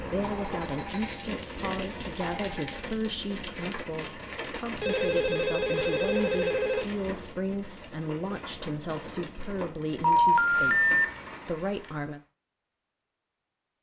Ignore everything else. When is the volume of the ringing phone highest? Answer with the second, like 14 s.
10 s.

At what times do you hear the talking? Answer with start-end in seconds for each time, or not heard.
0.0-12.2.